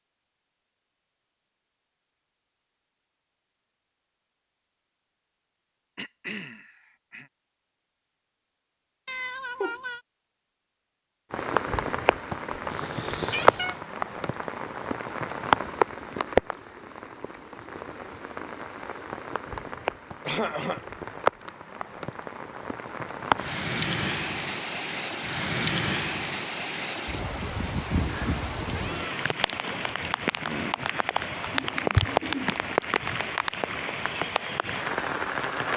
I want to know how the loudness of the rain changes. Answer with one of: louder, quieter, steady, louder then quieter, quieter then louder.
quieter then louder.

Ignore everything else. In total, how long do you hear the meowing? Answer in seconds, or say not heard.
3 s.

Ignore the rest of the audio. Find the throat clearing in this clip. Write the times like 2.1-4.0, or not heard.
6.0-7.3, 20.2-20.9, 31.5-32.6.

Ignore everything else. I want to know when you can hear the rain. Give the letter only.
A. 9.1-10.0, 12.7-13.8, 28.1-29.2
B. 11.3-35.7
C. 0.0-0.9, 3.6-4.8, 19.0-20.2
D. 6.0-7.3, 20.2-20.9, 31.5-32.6
B.